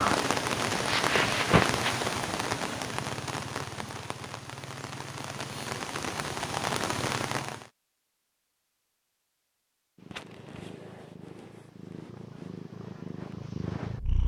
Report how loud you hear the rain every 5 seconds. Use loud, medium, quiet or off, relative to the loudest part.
loud, loud, off.